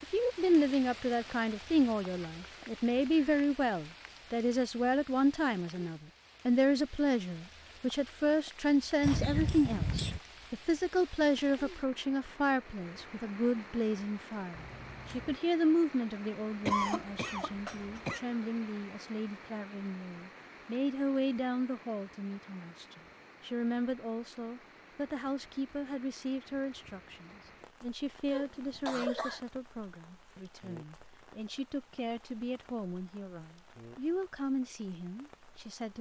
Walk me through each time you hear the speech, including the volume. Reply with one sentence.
The speech can be heard from 0.0 to 35.9 s, getting quieter.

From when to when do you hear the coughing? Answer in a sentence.
You can hear the coughing from 9.0 to 10.2 s, from 16.6 to 18.2 s and from 28.2 to 29.4 s.